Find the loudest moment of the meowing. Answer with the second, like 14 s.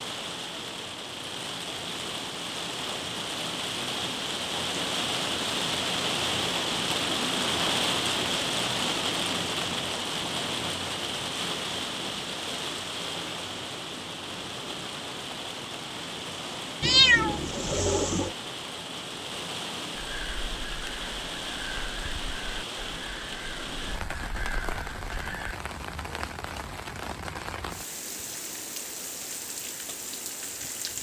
17 s.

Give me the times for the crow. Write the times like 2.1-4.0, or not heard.
19.9-25.6.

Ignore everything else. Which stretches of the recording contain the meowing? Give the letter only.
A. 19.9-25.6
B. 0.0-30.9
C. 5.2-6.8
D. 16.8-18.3
D.